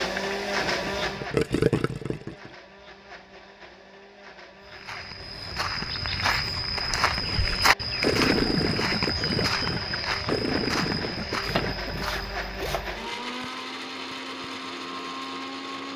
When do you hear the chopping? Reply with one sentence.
The chopping can be heard from 11.4 to 13.1 s.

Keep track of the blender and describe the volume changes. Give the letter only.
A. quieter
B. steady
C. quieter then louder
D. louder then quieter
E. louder
C.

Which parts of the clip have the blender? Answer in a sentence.
The blender can be heard from 0.0 to 15.9 s.